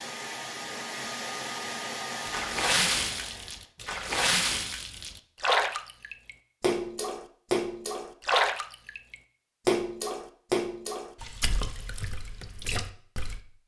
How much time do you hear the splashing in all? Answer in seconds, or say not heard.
11 s.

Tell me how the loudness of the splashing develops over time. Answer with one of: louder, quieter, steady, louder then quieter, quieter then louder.
quieter.